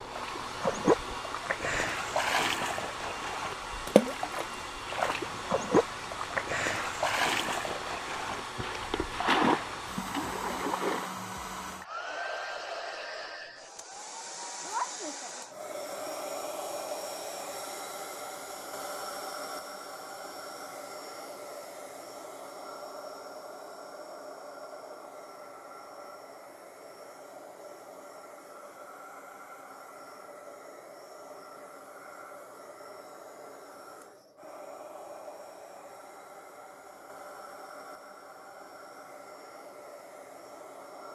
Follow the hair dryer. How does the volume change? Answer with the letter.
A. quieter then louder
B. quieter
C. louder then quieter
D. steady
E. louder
B.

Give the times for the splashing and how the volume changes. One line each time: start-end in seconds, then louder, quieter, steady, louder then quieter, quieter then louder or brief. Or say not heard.
0.1-11.2 steady.